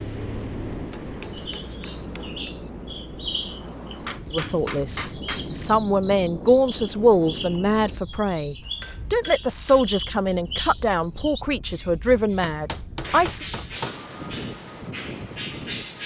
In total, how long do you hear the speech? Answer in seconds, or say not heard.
9 s.